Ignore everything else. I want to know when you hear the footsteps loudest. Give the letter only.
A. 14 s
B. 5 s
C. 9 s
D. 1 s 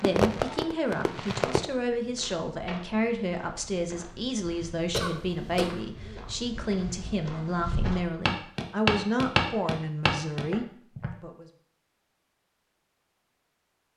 C.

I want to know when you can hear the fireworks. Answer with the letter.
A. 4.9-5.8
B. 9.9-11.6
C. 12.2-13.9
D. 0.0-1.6
D.